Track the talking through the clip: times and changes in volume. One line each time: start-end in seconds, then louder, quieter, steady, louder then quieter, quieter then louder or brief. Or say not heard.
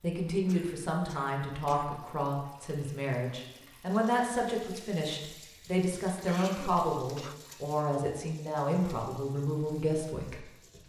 0.0-10.4 steady.